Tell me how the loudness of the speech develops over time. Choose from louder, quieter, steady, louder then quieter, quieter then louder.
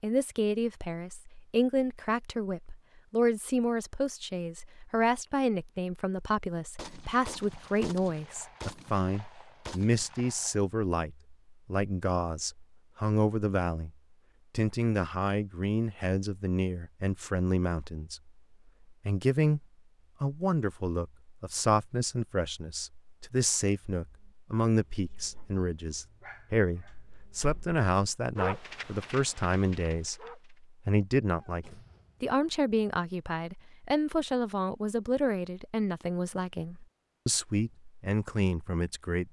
steady.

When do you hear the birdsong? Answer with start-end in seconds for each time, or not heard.
not heard.